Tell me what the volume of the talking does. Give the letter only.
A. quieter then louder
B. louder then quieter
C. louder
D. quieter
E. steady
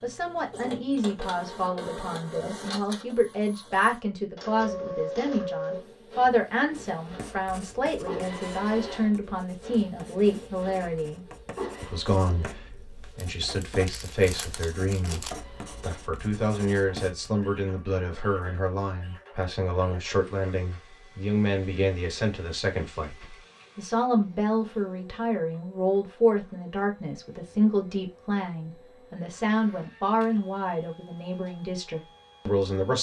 E.